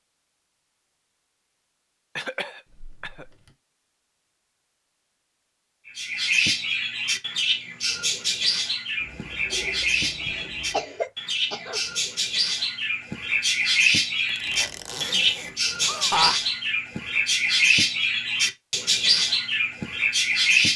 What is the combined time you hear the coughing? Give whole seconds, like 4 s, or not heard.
3 s.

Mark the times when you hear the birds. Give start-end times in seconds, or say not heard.
5.8-20.7.